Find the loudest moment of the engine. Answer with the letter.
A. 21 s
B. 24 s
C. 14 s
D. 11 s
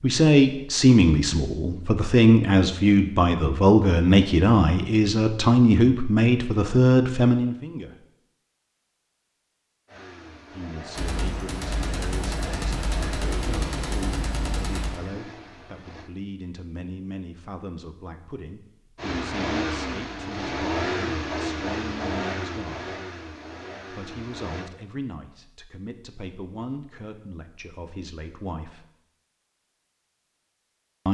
A.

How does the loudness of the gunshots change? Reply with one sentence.
The volume of the gunshots stays about the same.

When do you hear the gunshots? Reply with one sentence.
The gunshots can be heard from 10.9 to 15.0 s.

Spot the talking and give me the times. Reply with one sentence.
You can hear the talking from 0.0 to 8.1 s, from 10.5 to 22.9 s and from 23.9 to 28.9 s.